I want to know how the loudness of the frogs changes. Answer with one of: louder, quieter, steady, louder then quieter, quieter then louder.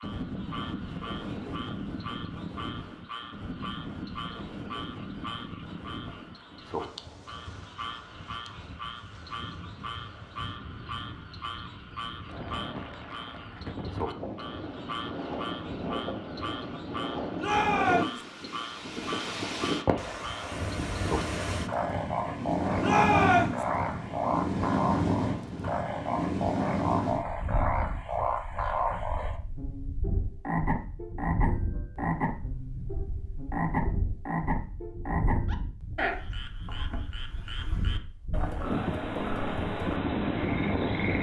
louder.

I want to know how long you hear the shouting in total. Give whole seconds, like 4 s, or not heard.
2 s.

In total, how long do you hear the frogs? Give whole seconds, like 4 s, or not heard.
41 s.